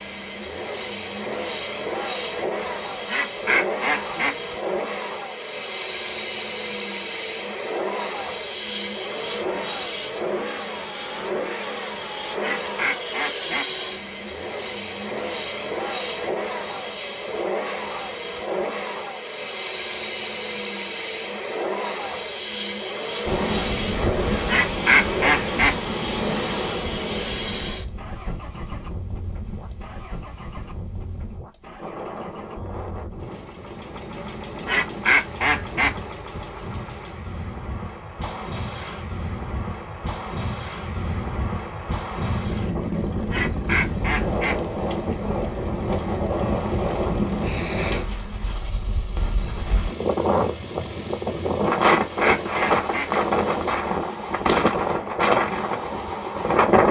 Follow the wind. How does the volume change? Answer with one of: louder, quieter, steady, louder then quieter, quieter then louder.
quieter then louder.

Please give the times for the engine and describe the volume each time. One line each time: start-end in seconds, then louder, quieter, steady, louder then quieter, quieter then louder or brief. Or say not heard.
0.0-56.6 quieter.